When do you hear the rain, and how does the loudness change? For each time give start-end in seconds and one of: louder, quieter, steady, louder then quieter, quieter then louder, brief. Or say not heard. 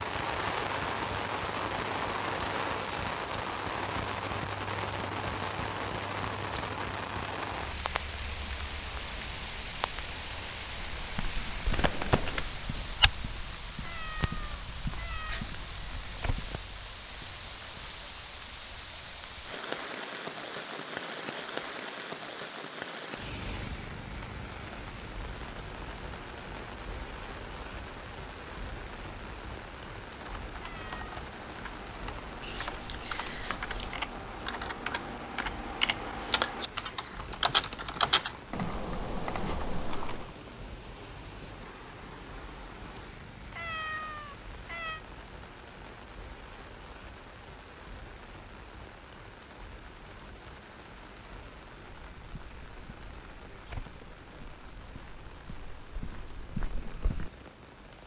0.0-58.0 quieter.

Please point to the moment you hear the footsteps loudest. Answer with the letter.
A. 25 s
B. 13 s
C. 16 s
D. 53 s
B.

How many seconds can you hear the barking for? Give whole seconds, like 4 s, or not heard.
not heard.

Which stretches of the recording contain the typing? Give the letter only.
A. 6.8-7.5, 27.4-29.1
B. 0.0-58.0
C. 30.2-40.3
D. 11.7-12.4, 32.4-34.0
C.